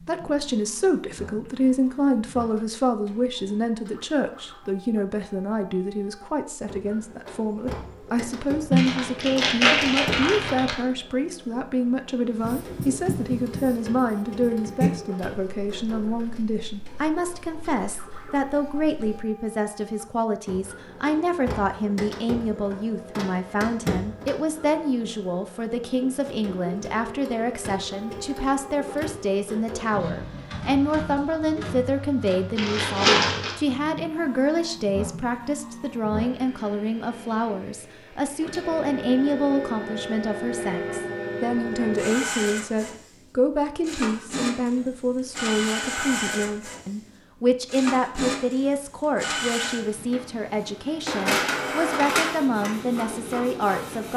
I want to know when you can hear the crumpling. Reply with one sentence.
The crumpling can be heard from 8.7 to 10.7 s and from 32.5 to 33.5 s.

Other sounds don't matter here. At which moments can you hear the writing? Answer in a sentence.
The writing can be heard from 12.3 to 19.2 s.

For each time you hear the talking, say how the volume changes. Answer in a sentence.
The talking can be heard from 0.0 to 54.1 s, at a steady volume.